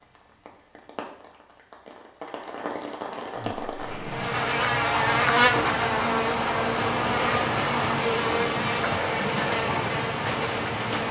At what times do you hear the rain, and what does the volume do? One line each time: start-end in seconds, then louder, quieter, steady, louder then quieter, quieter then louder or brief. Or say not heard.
0.0-11.0 louder.